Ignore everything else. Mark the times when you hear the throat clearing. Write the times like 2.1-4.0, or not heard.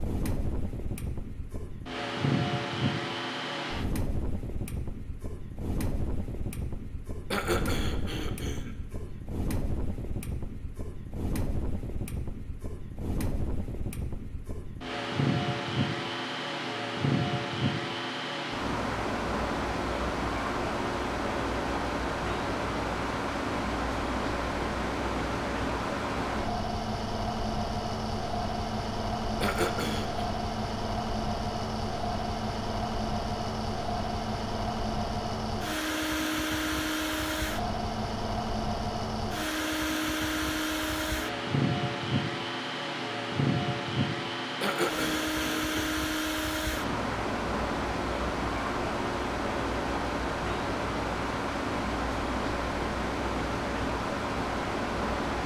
7.3-8.8, 29.4-30.2, 44.6-45.9.